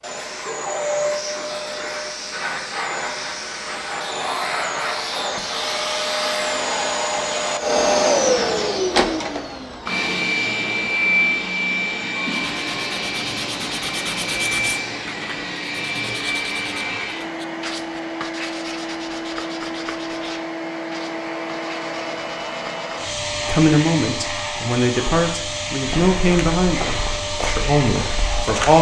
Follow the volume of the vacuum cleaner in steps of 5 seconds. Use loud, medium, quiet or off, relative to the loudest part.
medium, loud, loud, medium, medium, medium.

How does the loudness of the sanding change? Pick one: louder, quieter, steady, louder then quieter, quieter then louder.
quieter.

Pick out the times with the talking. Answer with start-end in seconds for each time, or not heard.
23.4-28.7.